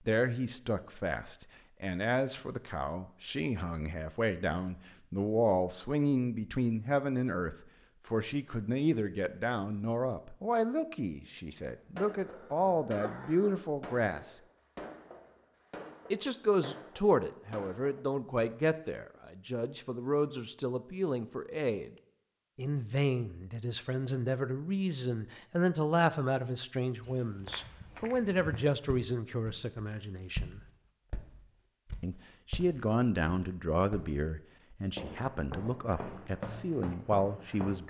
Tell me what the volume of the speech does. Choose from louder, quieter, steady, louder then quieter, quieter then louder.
steady.